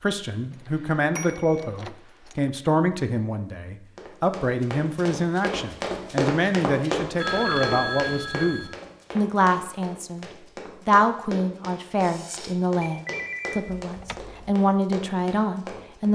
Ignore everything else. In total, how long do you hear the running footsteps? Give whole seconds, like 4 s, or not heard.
12 s.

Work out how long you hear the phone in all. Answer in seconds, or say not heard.
4 s.